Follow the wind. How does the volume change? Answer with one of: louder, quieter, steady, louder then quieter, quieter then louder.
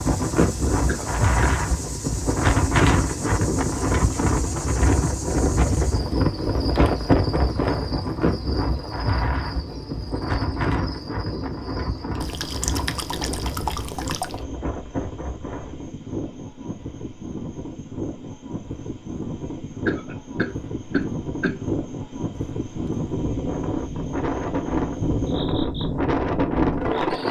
quieter then louder.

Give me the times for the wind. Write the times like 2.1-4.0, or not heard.
0.0-27.2.